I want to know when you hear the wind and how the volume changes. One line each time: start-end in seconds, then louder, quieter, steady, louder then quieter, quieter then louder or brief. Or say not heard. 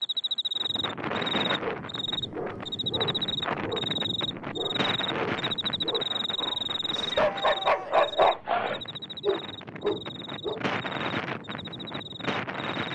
0.0-12.9 quieter then louder.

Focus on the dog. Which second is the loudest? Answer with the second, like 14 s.
8 s.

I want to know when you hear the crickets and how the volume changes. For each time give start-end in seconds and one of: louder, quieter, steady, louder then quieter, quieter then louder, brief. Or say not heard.
0.0-12.9 quieter.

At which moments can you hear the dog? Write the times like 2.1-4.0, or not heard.
1.6-10.7.